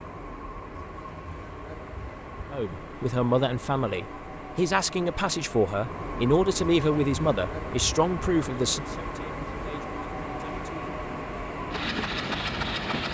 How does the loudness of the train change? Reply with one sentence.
The volume of the train goes up.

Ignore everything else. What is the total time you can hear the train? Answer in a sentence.
The train can be heard for 13 seconds in total.